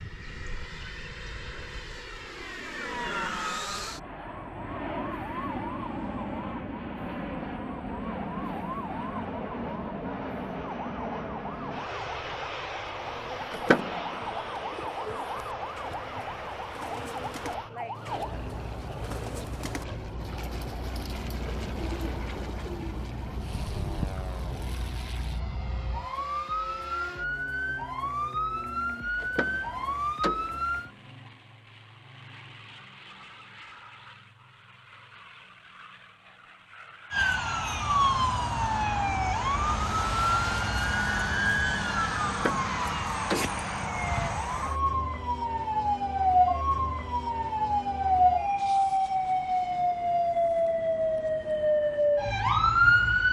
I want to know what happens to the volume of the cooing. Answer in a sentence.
The loudness of the cooing goes up.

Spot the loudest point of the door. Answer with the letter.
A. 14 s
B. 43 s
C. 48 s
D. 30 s
A.